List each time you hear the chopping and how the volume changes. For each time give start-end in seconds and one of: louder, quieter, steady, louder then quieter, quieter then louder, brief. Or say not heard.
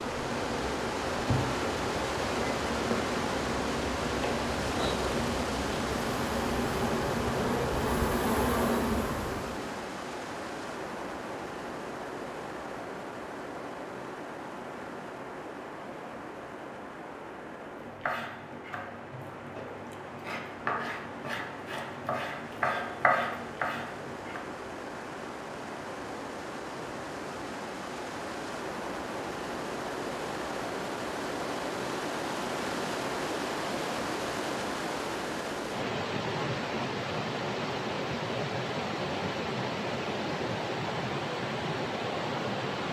17.8-24.4 louder.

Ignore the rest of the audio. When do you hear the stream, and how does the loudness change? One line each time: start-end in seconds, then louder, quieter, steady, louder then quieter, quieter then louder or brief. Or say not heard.
0.0-42.8 quieter then louder.